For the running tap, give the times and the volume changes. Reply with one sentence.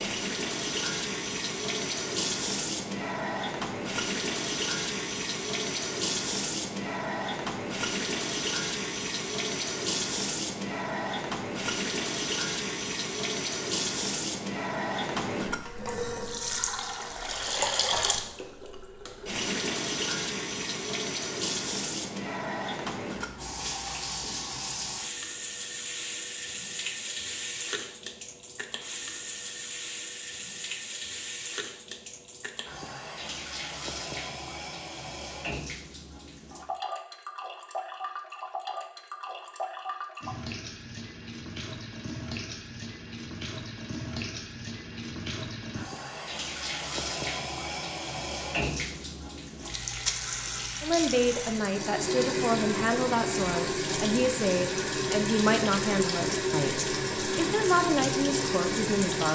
The running tap can be heard from 0.0 to 59.2 s, getting quieter then louder.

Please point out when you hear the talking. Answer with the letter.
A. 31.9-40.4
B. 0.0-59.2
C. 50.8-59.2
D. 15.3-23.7
C.